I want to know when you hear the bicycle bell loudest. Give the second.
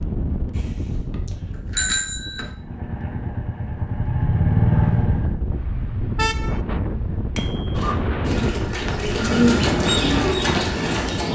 2 s.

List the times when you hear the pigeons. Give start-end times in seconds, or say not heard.
7.8-11.3.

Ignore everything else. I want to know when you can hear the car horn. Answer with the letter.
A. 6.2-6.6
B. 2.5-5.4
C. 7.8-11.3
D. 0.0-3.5
A.